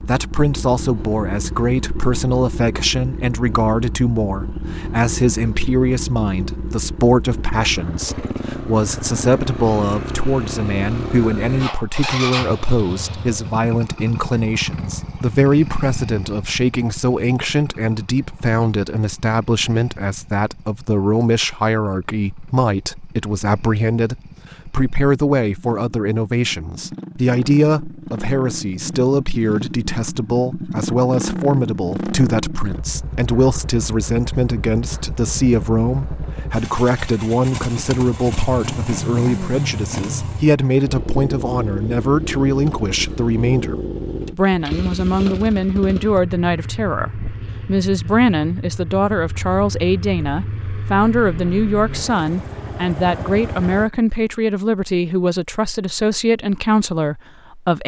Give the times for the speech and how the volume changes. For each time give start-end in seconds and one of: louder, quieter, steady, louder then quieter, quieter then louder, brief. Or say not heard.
0.1-57.8 steady.